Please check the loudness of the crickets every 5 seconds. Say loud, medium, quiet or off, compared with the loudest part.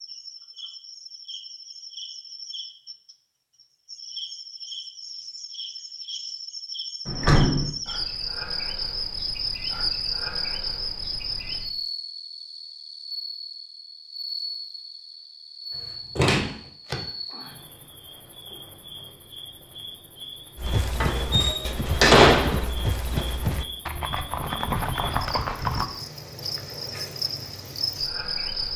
medium, loud, loud, medium, medium, loud.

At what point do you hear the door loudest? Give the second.
22 s.